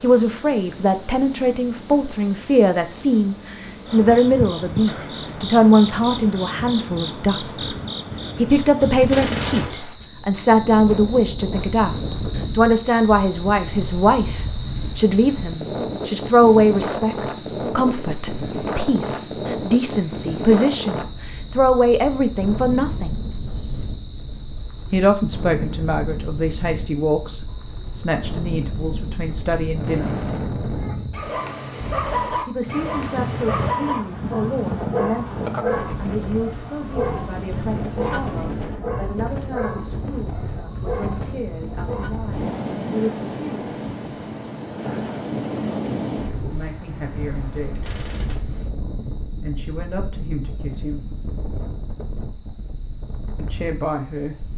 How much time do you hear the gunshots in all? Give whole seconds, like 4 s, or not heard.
2 s.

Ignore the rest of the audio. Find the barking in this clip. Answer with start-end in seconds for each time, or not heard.
30.8-42.1.